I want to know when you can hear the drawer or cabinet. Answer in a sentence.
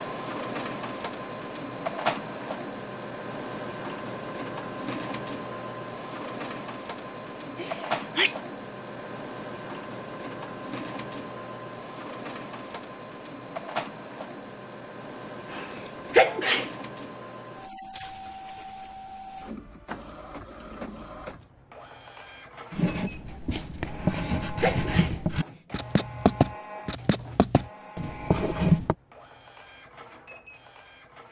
You can't hear the drawer or cabinet here.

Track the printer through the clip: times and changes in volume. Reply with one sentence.
You can hear the printer from 0.0 to 31.2 s, getting quieter.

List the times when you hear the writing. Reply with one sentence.
You can hear the writing from 22.7 to 28.9 s.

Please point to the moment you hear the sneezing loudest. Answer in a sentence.
The loudest moment of the sneezing is at 16 seconds.